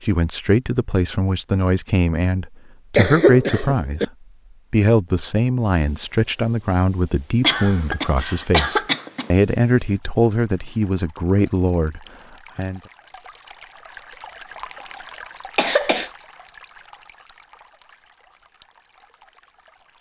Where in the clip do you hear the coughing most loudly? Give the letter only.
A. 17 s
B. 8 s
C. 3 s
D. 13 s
C.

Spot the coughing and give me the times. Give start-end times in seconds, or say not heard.
3.0-4.0, 7.4-9.3, 15.6-16.1.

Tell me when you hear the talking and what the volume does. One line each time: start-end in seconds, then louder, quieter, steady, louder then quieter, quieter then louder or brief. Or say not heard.
0.0-4.1 quieter then louder
4.7-12.8 steady.